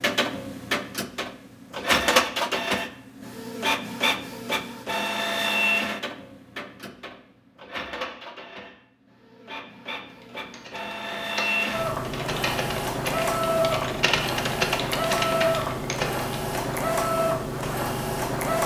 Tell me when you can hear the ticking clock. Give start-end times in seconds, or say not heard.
not heard.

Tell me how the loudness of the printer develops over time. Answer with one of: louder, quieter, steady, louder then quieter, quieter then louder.
quieter then louder.